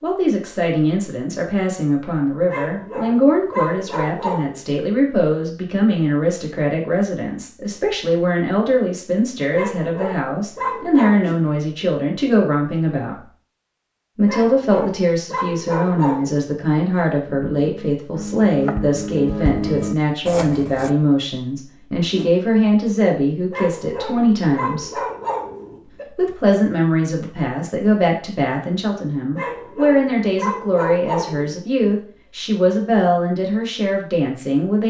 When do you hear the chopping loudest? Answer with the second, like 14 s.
20 s.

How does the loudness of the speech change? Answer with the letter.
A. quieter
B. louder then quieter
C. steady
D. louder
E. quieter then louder
C.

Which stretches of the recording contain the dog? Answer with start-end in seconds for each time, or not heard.
2.5-4.6, 9.5-11.2, 14.2-16.5, 23.5-26.1, 29.4-31.6.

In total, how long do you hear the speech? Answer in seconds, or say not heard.
33 s.